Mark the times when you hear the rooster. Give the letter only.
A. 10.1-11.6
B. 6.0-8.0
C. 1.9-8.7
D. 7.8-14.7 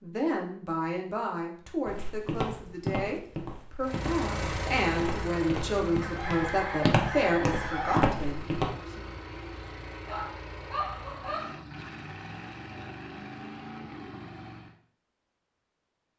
B.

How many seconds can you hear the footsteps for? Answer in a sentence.
The footsteps can be heard for 7 seconds in total.